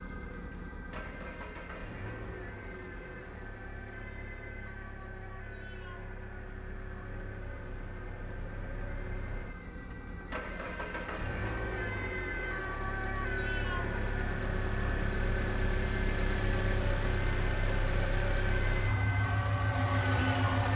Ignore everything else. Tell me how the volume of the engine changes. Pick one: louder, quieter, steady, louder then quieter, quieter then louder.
louder.